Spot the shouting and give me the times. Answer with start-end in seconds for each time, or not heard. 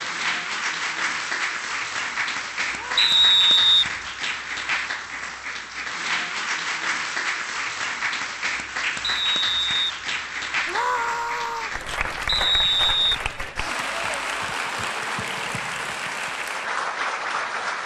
2.7-3.6, 10.7-11.8.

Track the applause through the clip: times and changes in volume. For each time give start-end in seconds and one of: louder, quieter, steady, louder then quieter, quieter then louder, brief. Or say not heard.
0.0-17.8 steady.